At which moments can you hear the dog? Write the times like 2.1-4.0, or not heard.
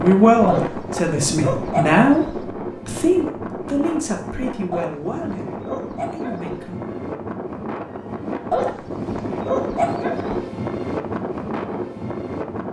0.5-2.4, 4.7-6.6, 8.5-10.4.